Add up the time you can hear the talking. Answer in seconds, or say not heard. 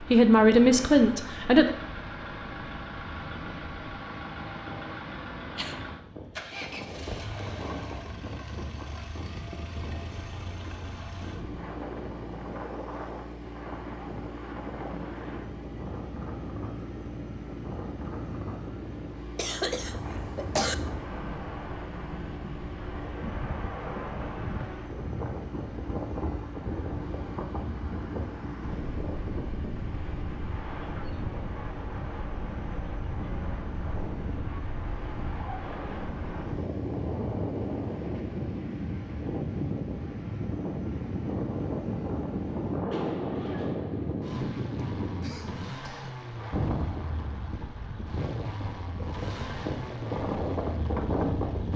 2 s.